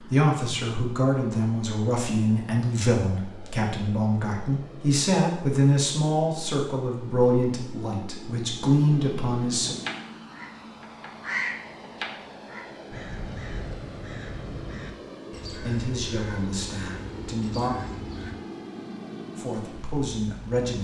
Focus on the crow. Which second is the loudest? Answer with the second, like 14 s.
11 s.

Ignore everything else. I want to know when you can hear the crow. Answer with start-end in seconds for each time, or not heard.
9.7-18.4.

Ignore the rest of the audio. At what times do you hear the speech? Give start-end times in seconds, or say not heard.
0.1-9.8, 15.5-17.7, 19.4-20.8.